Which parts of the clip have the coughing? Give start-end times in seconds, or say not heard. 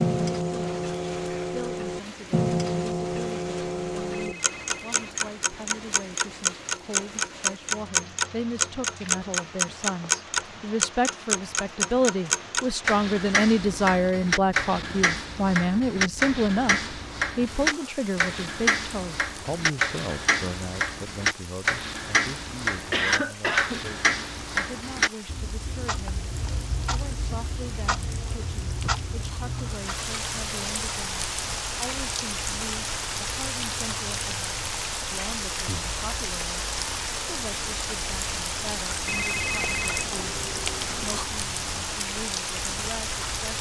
22.9-23.8.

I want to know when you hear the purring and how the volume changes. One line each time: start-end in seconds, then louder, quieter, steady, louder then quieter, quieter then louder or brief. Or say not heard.
not heard.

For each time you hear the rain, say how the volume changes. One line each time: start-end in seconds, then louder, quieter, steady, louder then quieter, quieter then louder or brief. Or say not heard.
0.0-43.5 louder.